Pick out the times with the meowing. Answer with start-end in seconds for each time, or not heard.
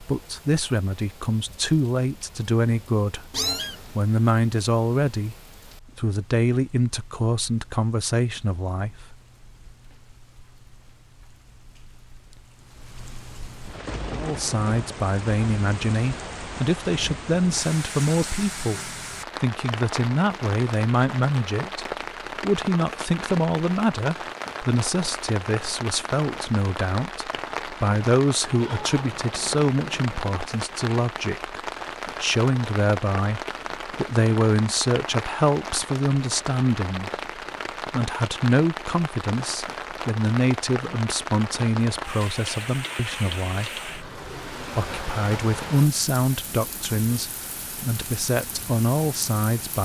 3.3-4.0, 28.4-30.4.